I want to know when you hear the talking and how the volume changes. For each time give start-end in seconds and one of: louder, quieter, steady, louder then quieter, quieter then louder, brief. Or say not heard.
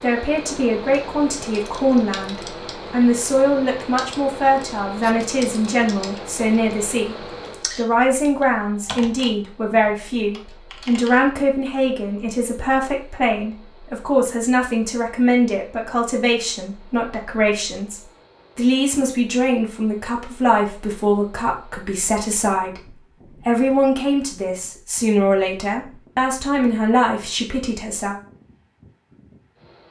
0.0-28.1 steady.